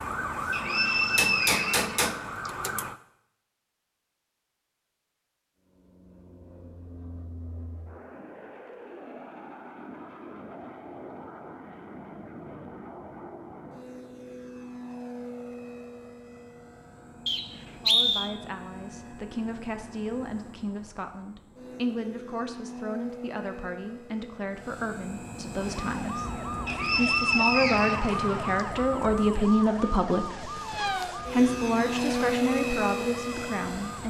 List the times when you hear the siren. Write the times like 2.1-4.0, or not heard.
0.0-3.0, 25.6-34.0.